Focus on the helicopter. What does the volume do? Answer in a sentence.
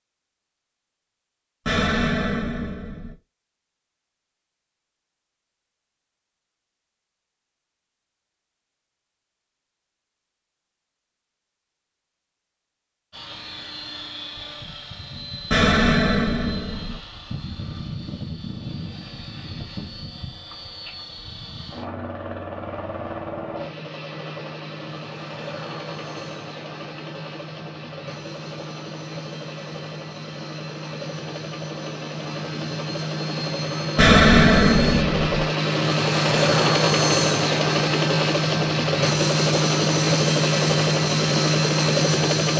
The loudness of the helicopter goes up.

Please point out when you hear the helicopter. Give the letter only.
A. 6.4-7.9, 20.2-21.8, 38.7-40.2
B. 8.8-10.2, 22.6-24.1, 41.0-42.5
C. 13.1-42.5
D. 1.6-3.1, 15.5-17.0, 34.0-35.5
C.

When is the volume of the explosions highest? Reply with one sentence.
The loudest moment of the explosions is at 34 seconds.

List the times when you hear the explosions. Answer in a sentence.
You can hear the explosions from 1.6 to 3.1 s, from 15.5 to 17.0 s and from 34.0 to 35.5 s.